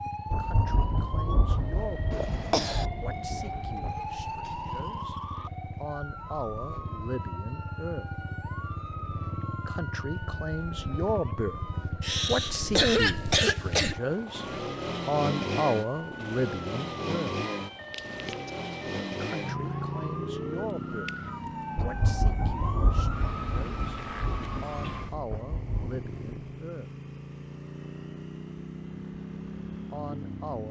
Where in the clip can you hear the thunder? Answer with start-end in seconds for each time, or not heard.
0.3-4.1, 21.8-26.3.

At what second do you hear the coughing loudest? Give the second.
13 s.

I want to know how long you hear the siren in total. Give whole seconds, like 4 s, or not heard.
25 s.